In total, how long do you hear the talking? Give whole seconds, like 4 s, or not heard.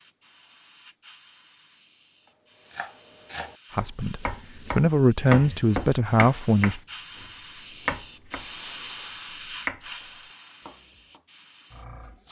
3 s.